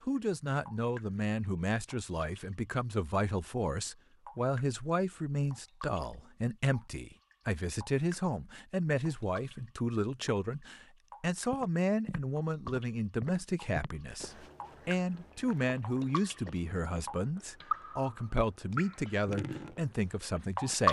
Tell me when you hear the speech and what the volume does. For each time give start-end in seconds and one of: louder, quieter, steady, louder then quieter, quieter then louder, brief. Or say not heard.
0.0-20.8 steady.